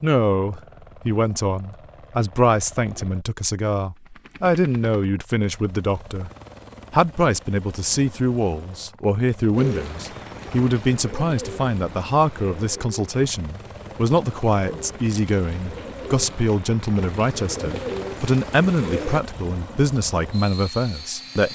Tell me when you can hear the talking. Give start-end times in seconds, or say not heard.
0.0-6.3, 6.9-21.5.